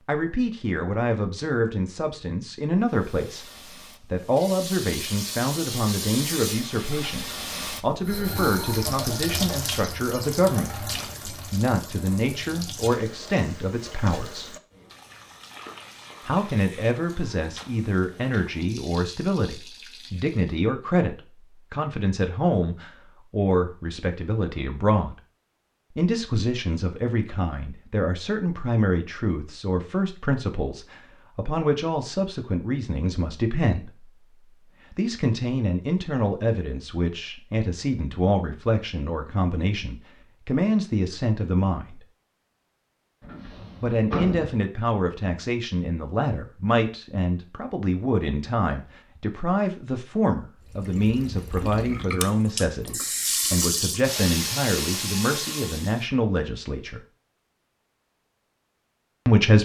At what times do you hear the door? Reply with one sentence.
The door can be heard from 43.2 to 44.6 s.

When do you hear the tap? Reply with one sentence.
The tap can be heard from 2.9 to 20.6 s and from 50.7 to 56.0 s.